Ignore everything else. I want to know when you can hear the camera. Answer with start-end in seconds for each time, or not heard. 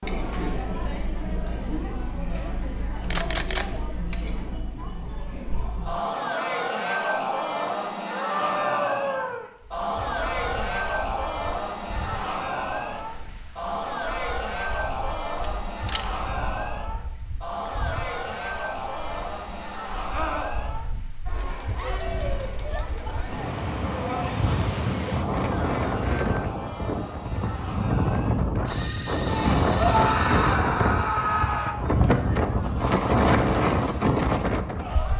3.1-3.7, 15.1-16.1, 28.6-30.6.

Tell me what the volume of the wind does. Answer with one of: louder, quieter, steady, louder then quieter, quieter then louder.
louder.